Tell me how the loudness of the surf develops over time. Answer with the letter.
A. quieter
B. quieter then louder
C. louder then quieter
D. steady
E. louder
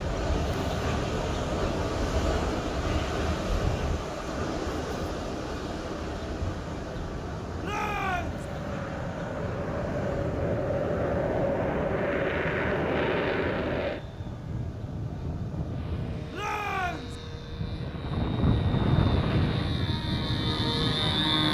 B.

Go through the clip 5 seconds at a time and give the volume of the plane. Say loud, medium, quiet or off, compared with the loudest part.
medium, medium, loud, loud, loud.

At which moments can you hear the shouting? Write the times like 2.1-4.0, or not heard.
7.6-8.4, 16.3-17.1.